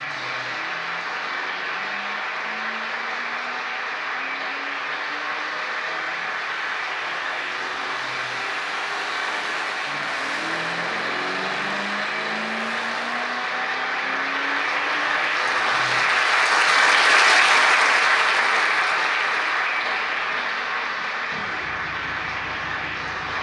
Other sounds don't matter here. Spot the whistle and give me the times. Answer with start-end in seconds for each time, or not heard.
not heard.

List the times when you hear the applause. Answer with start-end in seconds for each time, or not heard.
0.0-23.3.